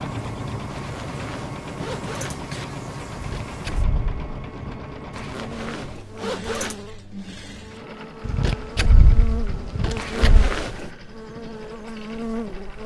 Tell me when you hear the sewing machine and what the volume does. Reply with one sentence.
The sewing machine can be heard from 0.0 to 12.8 s, getting quieter.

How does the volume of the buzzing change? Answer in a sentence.
The volume of the buzzing goes up.